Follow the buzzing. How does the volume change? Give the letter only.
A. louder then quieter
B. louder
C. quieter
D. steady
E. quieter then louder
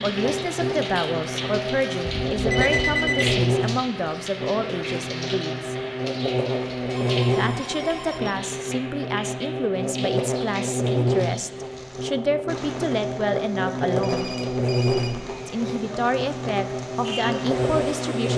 D.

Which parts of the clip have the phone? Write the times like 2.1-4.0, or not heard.
2.0-3.4, 6.8-8.4, 14.0-15.2.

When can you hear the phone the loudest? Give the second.
3 s.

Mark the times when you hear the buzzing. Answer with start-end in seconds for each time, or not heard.
0.0-18.3.